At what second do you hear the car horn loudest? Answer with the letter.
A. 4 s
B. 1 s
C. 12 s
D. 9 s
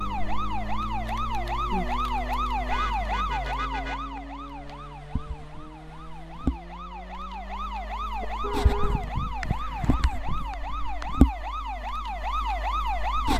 D.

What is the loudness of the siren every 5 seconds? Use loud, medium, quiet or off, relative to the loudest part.
loud, medium, loud.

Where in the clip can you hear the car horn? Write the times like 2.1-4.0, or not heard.
2.6-4.2, 8.2-9.1.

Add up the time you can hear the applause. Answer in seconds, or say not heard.
2 s.